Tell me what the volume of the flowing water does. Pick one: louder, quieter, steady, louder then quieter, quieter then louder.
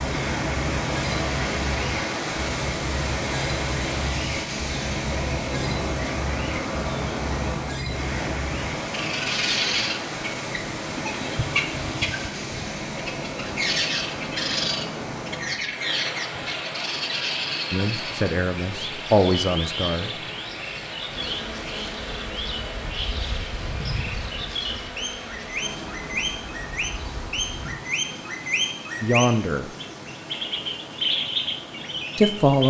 quieter.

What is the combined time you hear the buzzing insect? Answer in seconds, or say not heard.
7 s.